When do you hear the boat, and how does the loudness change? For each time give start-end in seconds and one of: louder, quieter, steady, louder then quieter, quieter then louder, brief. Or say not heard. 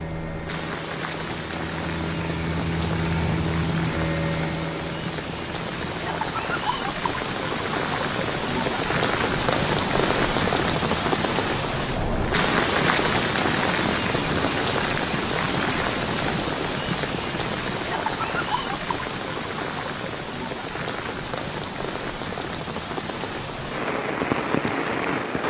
0.0-6.2 louder then quieter.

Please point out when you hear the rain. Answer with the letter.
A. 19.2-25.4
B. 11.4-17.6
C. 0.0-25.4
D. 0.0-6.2
C.